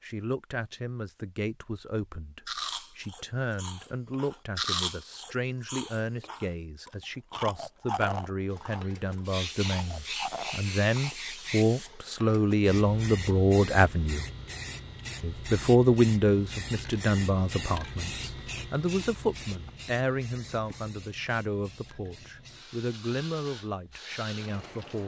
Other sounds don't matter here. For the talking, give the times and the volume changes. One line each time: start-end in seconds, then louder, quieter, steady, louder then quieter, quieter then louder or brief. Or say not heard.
0.0-14.2 louder
15.2-25.0 quieter.